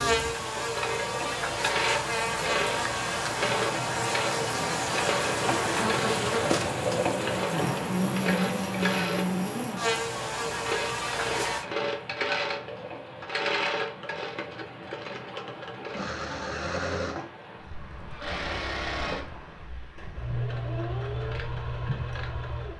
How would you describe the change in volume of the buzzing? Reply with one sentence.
The volume of the buzzing stays about the same.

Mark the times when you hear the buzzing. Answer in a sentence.
You can hear the buzzing from 0.0 to 11.7 s.